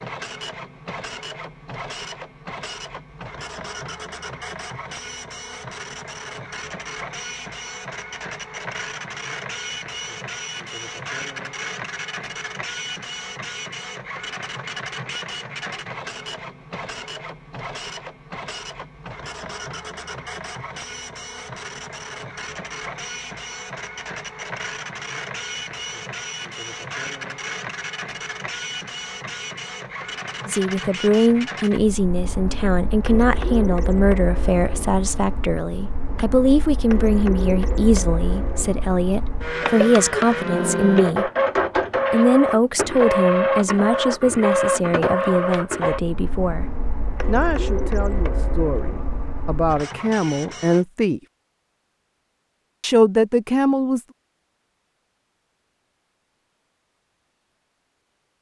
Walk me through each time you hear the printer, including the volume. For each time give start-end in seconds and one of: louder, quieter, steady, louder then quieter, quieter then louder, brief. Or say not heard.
0.0-50.9 louder.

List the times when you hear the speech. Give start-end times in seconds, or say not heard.
30.4-41.3, 42.1-51.2, 52.8-54.0.